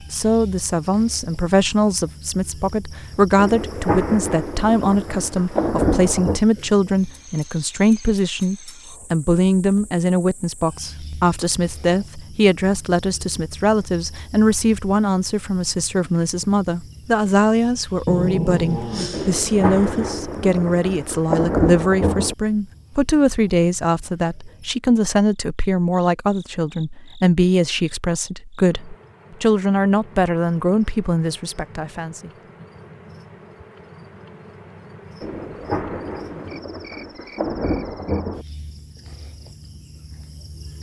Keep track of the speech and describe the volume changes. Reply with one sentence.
The volume of the speech stays about the same.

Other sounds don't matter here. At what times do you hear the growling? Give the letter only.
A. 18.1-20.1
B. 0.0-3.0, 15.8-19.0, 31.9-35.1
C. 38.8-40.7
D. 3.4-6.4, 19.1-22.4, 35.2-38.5
A.